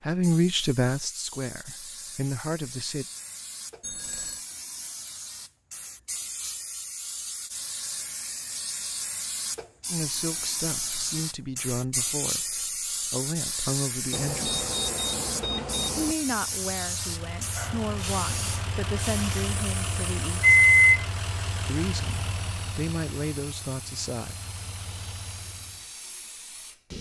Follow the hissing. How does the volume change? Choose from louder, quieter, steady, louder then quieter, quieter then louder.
louder then quieter.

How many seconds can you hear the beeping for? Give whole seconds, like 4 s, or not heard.
3 s.